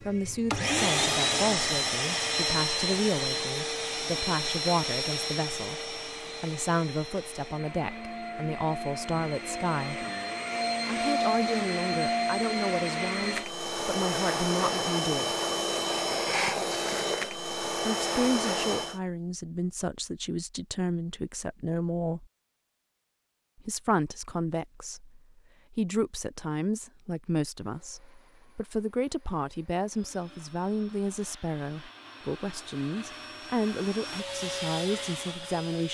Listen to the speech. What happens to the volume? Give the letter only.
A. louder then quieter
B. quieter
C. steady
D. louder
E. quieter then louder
C.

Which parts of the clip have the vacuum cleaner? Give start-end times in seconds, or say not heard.
0.0-19.0, 27.6-35.8.